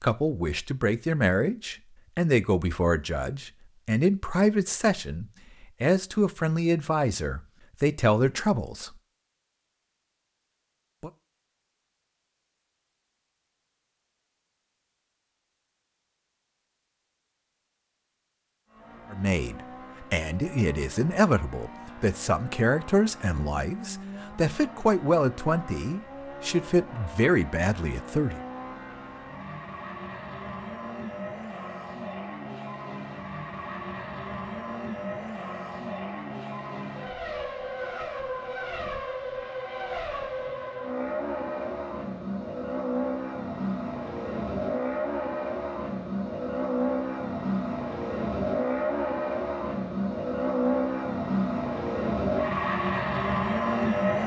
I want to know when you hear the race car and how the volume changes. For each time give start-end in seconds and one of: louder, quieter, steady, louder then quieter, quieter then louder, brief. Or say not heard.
18.6-54.2 louder.